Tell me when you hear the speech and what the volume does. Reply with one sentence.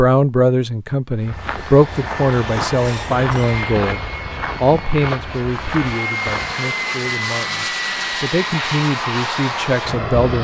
You can hear the speech from 0.0 to 10.3 s, getting quieter then louder.